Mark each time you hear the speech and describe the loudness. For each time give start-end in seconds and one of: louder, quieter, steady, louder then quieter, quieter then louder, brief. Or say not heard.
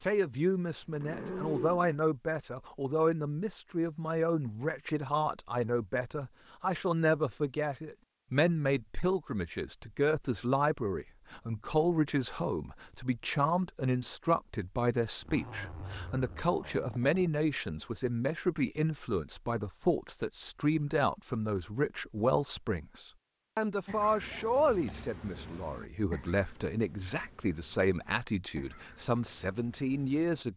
0.0-30.5 steady.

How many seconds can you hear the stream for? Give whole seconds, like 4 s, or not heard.
not heard.